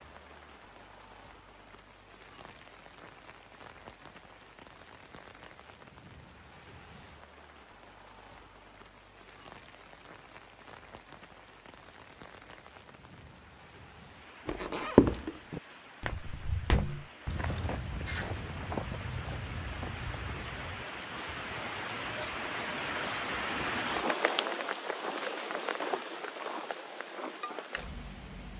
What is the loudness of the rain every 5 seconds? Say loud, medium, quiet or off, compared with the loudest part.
quiet, quiet, quiet, quiet, loud, loud.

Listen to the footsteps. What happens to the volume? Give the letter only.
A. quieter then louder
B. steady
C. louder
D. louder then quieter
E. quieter
E.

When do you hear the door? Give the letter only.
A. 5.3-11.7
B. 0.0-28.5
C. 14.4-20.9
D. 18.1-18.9
D.